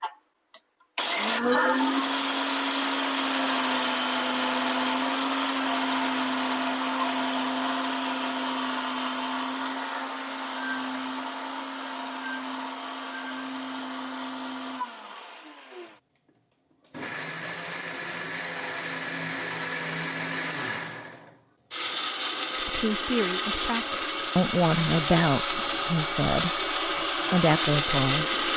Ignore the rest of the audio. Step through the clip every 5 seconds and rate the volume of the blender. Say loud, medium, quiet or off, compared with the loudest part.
loud, loud, medium, medium, medium, loud.